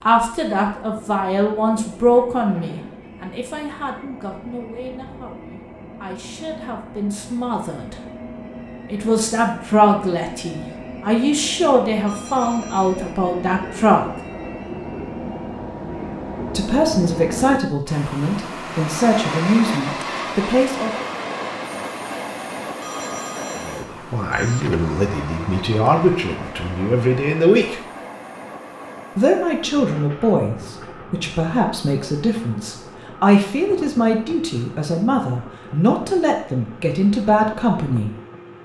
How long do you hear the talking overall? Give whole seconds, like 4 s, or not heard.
31 s.